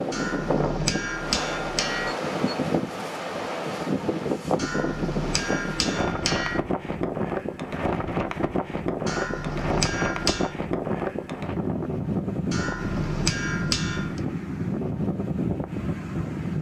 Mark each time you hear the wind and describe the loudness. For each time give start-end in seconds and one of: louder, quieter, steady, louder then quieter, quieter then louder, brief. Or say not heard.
0.0-16.5 steady.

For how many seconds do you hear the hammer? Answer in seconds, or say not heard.
7 s.